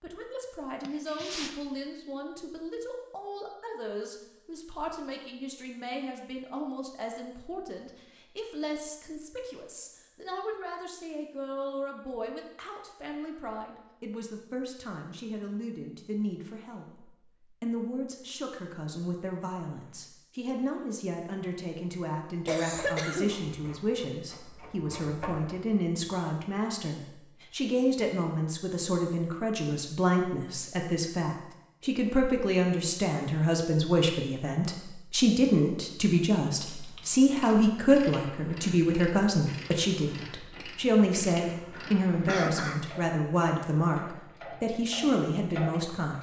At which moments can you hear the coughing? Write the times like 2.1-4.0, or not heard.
0.8-1.6, 22.4-23.4, 41.7-42.9.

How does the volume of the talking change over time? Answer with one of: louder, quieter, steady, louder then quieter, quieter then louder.
louder.